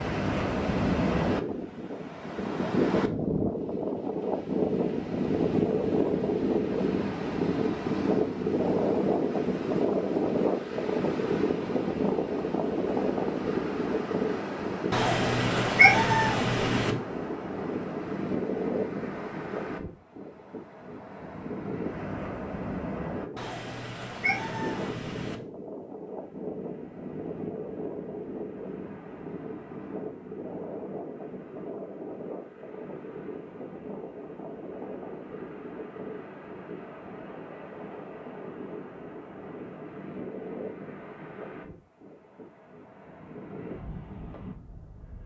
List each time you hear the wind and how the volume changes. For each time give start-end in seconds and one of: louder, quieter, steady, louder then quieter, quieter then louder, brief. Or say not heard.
0.0-45.2 quieter.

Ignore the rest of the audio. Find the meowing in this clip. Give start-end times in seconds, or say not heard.
14.9-16.9, 23.4-25.4.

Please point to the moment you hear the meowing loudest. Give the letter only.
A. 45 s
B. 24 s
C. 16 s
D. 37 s
C.